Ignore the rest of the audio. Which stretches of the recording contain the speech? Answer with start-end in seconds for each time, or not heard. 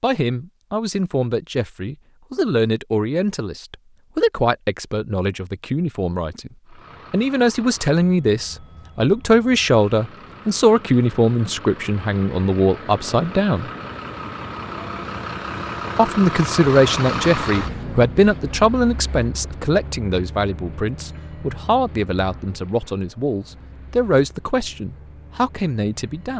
0.0-6.5, 7.1-13.7, 15.9-26.3.